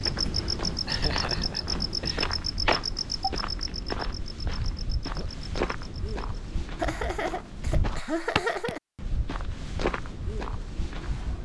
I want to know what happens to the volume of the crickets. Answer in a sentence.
The loudness of the crickets goes down.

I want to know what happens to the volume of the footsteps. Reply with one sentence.
The volume of the footsteps stays about the same.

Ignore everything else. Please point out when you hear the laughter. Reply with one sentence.
The laughter can be heard from 0.8 to 2.4 s and from 6.8 to 8.8 s.